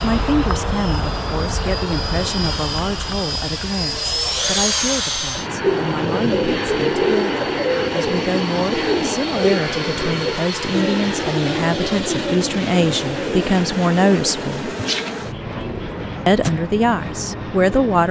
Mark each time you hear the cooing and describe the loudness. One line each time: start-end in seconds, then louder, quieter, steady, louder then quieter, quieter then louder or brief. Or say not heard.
5.6-16.5 quieter.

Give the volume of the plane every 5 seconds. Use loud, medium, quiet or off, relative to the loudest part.
loud, loud, loud, medium.